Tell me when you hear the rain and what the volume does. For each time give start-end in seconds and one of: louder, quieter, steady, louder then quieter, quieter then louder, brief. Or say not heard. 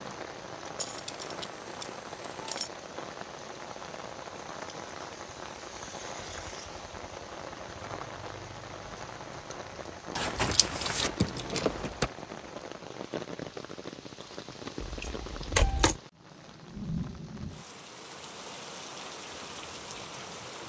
0.0-20.6 steady.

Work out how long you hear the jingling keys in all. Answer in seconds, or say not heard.
5 s.